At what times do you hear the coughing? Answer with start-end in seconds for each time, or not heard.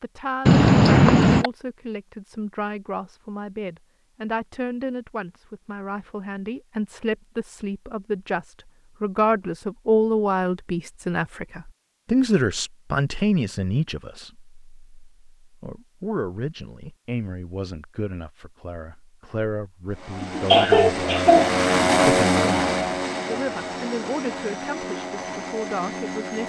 0.5-1.5, 20.2-22.1.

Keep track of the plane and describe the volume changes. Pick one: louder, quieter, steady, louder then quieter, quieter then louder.
louder then quieter.